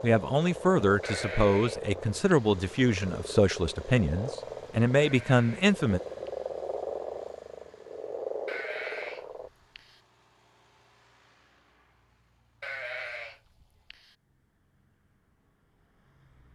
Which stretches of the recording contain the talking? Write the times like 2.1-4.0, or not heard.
0.0-6.0.